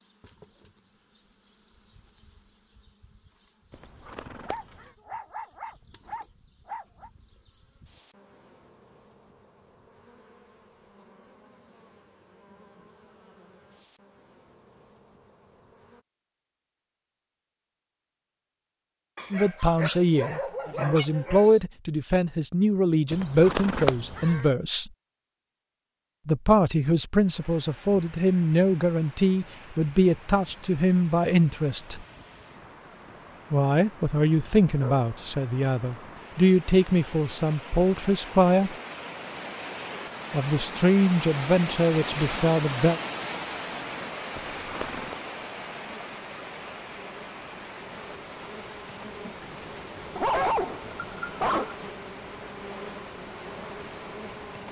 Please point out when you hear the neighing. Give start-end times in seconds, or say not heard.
3.7-5.0, 23.1-24.4, 44.4-45.1.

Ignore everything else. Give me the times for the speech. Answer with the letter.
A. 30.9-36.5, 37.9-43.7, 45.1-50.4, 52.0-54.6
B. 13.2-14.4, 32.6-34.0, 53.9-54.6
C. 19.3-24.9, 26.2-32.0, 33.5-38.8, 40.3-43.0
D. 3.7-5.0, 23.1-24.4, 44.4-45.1
C.